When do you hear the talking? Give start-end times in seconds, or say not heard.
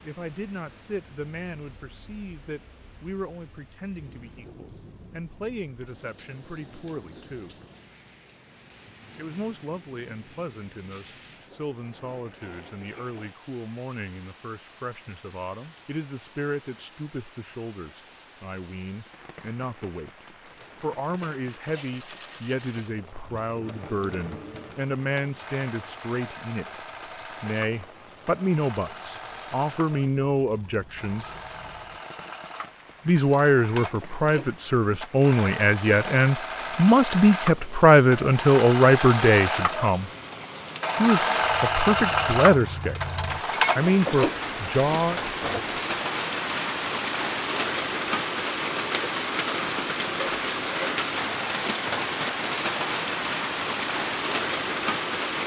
0.0-7.5, 9.2-26.6, 27.4-31.3, 33.0-40.0, 41.0-43.0, 43.8-45.2.